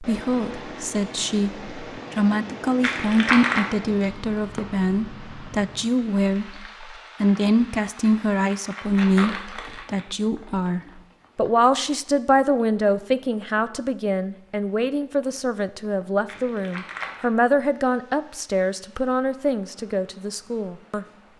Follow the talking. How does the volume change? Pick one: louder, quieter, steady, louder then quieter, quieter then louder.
steady.